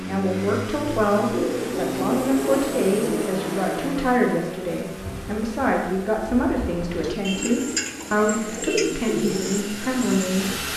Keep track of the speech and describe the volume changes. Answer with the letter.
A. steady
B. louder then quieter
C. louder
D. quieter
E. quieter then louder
A.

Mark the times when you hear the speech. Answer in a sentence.
You can hear the speech from 0.1 to 10.6 s.